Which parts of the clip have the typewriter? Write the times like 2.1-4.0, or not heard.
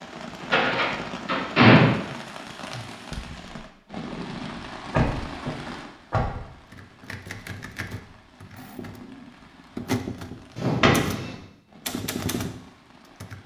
6.7-13.4.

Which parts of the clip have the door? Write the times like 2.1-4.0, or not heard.
0.4-1.9, 4.9-6.4, 10.6-11.3.